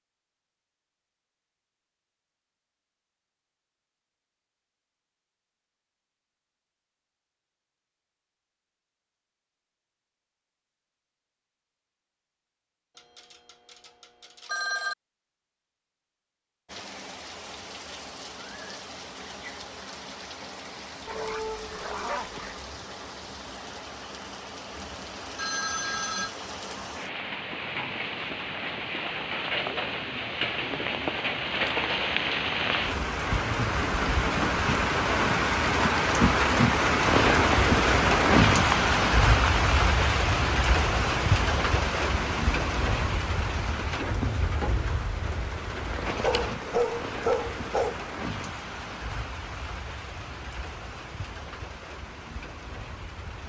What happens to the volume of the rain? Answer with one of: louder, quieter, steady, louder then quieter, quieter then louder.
louder then quieter.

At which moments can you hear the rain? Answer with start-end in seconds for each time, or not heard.
16.6-53.4.